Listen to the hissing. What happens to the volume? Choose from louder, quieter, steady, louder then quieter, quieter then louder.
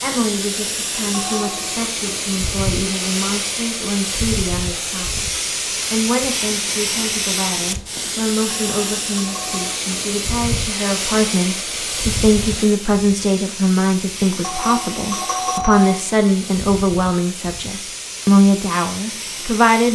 quieter.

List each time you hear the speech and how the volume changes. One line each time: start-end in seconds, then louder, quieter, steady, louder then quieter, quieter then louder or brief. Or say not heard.
0.0-5.3 steady
5.9-19.9 louder.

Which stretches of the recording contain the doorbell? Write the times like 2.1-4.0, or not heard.
1.1-1.9, 8.5-9.8, 14.4-15.9.